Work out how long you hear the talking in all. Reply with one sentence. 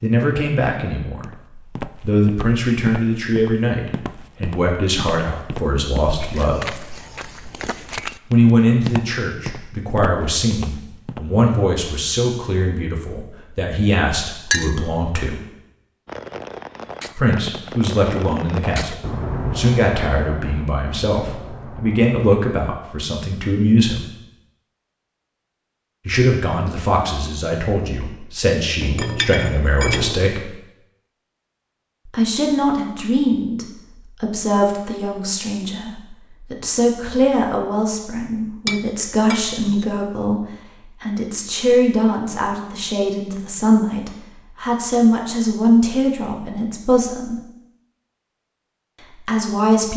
The talking can be heard for 41 seconds in total.